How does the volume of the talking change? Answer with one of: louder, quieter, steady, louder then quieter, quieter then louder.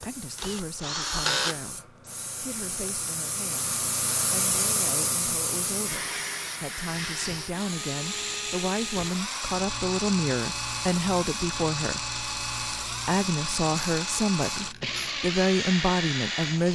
louder.